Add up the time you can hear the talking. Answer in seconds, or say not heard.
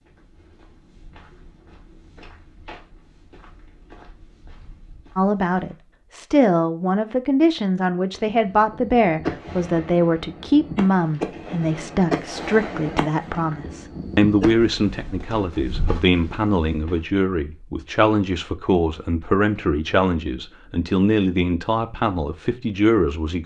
18 s.